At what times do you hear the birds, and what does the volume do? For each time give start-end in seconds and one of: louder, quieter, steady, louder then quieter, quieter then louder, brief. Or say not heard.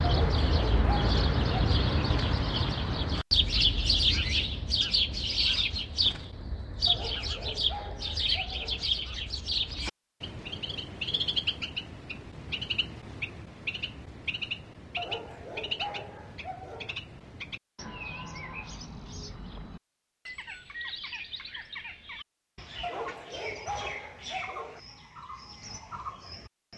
0.0-26.7 quieter.